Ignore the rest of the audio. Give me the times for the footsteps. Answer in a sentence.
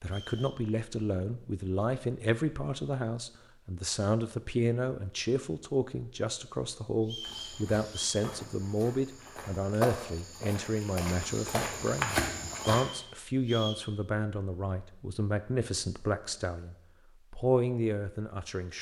You can hear the footsteps from 7.2 to 12.8 s.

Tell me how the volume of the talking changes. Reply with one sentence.
The volume of the talking stays about the same.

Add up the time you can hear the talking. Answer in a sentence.
The talking can be heard for 19 seconds in total.